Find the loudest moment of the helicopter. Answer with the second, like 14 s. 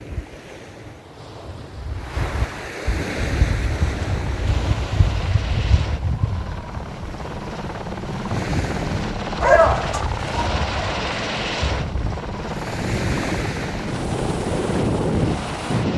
11 s.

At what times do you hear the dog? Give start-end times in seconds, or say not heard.
9.4-10.5.